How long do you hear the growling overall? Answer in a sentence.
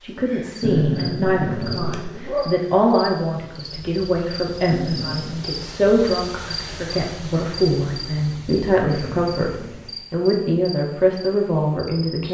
You can hear the growling for 4 seconds altogether.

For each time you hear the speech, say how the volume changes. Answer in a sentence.
You can hear the speech from 0.0 to 9.5 s, at a steady volume; and briefly from 10.1 to 12.2 s.